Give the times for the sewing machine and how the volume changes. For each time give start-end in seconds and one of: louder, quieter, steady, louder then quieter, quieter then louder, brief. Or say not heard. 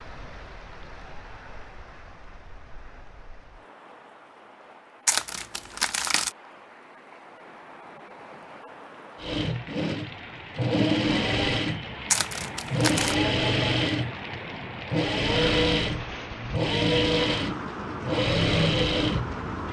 9.2-19.6 steady.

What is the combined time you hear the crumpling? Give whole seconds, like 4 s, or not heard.
2 s.